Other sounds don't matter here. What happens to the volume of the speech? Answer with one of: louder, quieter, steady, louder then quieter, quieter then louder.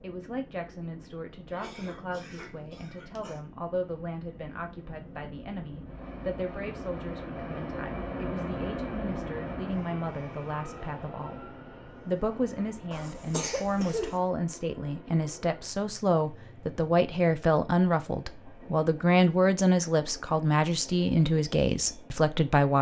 louder.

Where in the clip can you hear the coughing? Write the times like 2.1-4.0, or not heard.
1.5-3.4, 12.9-14.2.